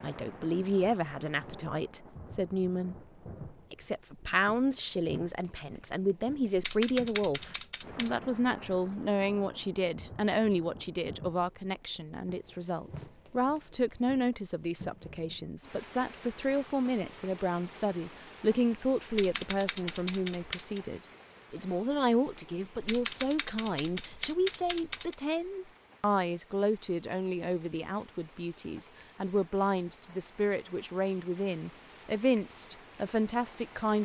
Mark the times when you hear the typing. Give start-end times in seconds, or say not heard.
6.5-8.1, 19.1-20.8, 22.8-25.1.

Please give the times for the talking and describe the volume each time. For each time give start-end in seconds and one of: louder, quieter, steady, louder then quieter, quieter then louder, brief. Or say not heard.
0.0-3.0 brief
3.7-34.0 steady.